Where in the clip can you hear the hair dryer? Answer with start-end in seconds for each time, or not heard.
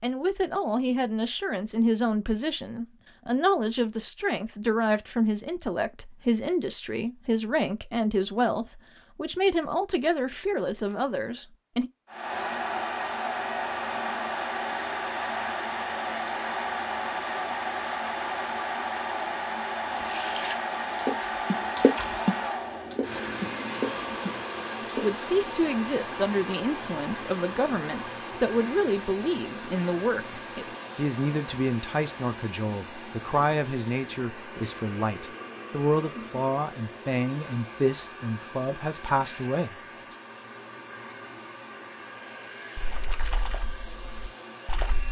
12.1-45.0.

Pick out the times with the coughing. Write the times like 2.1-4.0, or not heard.
not heard.